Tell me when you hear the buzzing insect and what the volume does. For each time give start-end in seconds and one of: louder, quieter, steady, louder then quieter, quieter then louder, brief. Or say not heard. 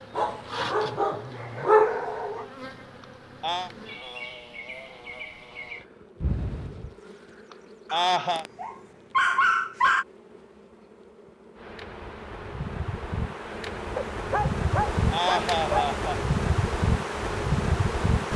0.0-18.3 quieter then louder.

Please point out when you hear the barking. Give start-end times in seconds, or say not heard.
0.1-2.5, 7.9-10.1, 13.9-15.9.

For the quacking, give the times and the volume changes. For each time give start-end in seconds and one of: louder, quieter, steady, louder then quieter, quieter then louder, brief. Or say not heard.
not heard.